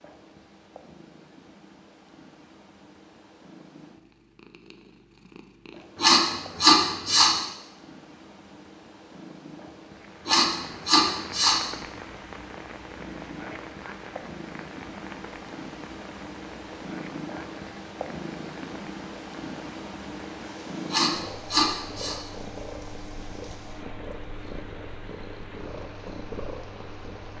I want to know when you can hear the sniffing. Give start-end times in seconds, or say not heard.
6.0-7.3, 10.2-11.6, 20.9-22.1.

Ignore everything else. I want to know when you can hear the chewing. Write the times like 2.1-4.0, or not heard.
not heard.